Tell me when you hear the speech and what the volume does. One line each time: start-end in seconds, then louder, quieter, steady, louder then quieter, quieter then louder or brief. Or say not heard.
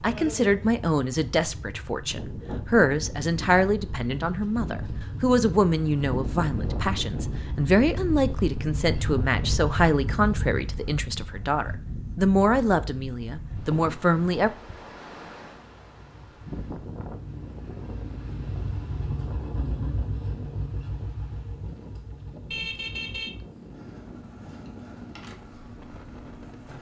0.0-14.5 steady.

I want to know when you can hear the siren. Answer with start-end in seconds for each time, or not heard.
not heard.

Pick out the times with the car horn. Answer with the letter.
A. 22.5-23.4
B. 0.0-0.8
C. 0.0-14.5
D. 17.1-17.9
A.